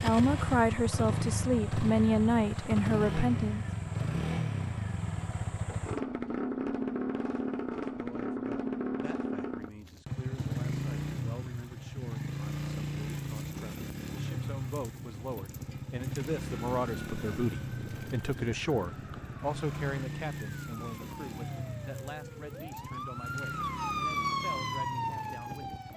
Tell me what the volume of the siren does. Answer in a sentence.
The loudness of the siren goes up.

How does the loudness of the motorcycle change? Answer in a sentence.
The volume of the motorcycle goes down.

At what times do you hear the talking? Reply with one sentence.
The talking can be heard from 0.0 to 3.6 s and from 7.9 to 25.8 s.